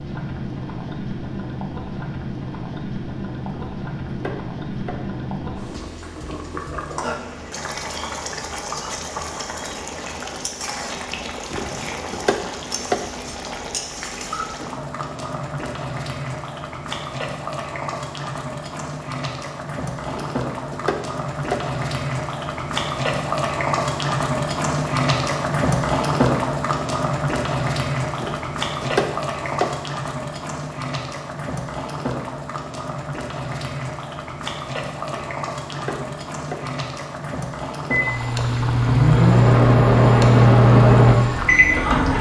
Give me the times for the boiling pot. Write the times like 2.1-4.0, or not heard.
0.0-42.1.